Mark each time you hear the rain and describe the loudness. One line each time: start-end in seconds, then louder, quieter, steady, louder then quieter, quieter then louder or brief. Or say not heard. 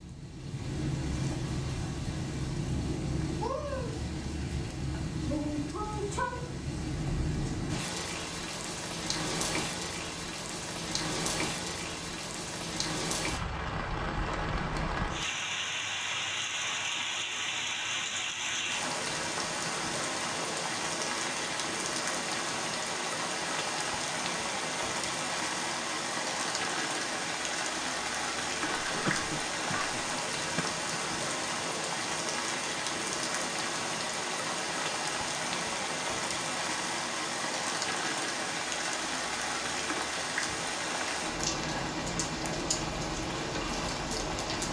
0.0-44.6 steady.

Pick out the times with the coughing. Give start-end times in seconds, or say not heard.
28.6-30.6.